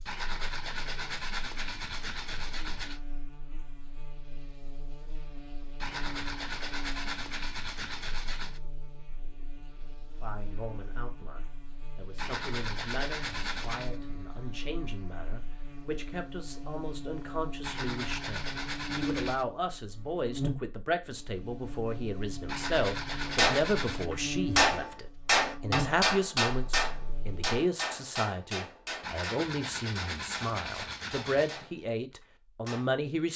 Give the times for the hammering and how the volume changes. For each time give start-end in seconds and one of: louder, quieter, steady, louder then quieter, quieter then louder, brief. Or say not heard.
23.2-32.9 quieter.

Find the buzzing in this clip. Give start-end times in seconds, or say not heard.
0.0-27.6.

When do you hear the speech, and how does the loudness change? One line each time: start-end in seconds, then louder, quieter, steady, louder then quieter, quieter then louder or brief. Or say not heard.
10.2-33.3 louder.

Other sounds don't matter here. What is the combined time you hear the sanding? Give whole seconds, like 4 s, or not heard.
14 s.